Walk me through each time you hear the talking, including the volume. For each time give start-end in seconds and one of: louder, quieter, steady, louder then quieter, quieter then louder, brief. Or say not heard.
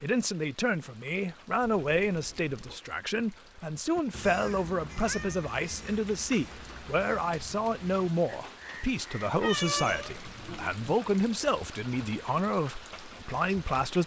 0.0-14.0 steady.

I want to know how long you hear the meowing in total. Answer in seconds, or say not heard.
3 s.